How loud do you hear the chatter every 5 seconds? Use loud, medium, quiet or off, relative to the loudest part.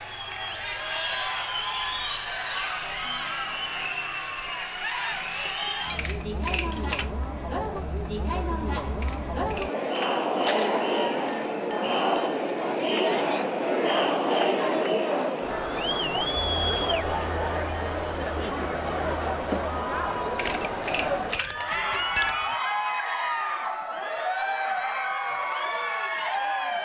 medium, medium, loud, loud, loud, loud.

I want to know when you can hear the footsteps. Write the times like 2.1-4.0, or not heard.
not heard.